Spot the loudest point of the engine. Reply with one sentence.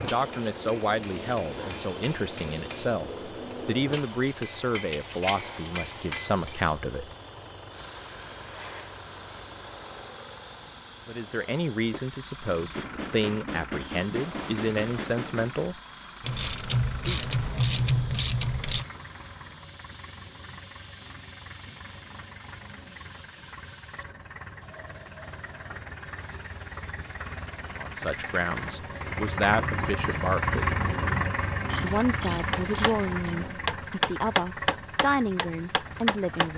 The volume of the engine peaks at 31 seconds.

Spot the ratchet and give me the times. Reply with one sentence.
You can hear the ratchet from 4.9 to 5.5 s, from 16.2 to 18.9 s and from 31.6 to 33.4 s.